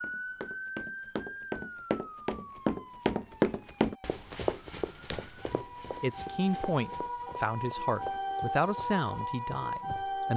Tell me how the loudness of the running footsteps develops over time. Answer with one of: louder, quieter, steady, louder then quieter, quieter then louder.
louder then quieter.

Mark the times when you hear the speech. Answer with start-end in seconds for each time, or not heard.
5.5-10.3.